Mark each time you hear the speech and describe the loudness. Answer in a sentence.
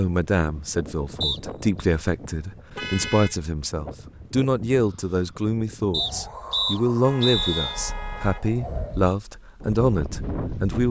The speech can be heard from 0.0 to 10.8 s, at a steady volume.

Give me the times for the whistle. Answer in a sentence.
The whistle can be heard from 1.2 to 1.9 s and from 5.9 to 7.8 s.